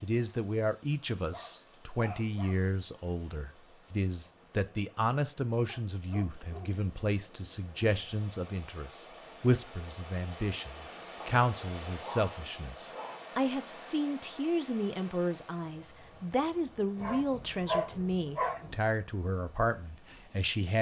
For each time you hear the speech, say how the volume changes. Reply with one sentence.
You can hear the speech from 0.0 to 20.7 s, at a steady volume.